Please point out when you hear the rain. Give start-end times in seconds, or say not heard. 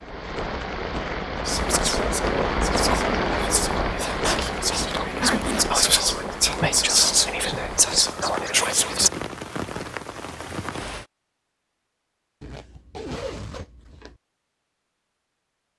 0.0-11.1.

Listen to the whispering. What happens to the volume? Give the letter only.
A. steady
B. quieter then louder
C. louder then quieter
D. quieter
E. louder
E.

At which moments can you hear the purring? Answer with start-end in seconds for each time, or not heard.
not heard.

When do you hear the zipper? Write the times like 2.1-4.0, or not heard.
4.2-5.7, 12.4-14.2.